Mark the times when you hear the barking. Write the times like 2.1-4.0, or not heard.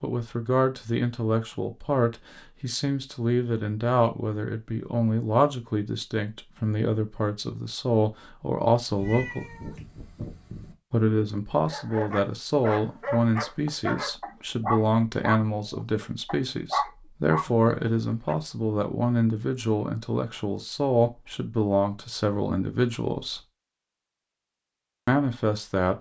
11.7-18.4.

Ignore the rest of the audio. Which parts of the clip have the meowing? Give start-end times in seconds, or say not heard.
8.8-10.8.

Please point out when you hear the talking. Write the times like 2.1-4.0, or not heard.
0.0-9.5, 10.9-23.4, 25.1-25.9.